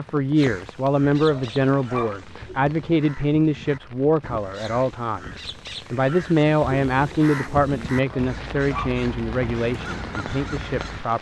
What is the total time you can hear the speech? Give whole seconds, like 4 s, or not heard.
11 s.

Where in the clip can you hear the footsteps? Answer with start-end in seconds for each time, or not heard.
not heard.